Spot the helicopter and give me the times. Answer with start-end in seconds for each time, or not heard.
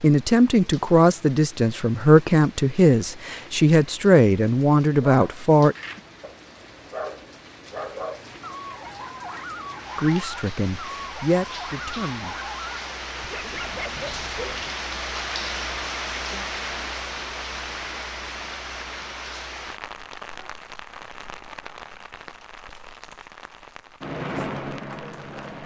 24.0-25.6.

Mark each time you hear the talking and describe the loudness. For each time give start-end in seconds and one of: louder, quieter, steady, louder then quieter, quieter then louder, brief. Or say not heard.
0.0-5.8 steady
9.9-12.4 brief.